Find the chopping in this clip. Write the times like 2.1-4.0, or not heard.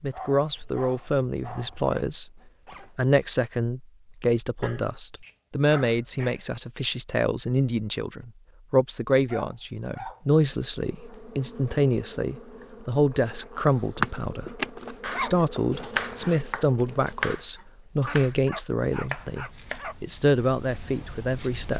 15.0-21.7.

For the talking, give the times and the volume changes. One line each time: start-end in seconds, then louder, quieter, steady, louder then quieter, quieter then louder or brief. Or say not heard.
0.0-2.3 brief
3.0-21.7 steady.